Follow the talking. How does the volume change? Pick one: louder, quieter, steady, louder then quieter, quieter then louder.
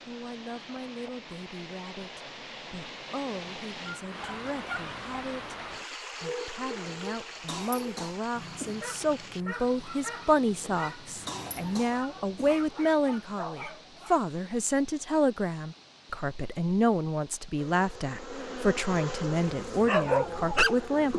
louder.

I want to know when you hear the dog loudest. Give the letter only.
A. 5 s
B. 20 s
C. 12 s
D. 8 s
B.